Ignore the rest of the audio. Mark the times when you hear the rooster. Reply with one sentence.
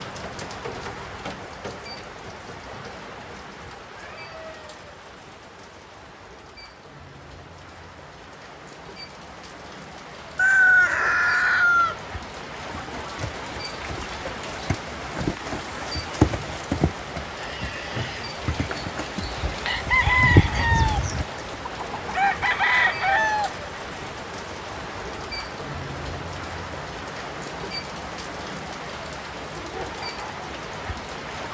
You can hear the rooster from 10.3 to 11.9 s and from 19.6 to 23.8 s.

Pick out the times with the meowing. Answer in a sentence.
The meowing can't be heard in this clip.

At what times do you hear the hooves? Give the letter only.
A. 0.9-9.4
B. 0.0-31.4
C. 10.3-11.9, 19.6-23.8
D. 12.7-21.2
D.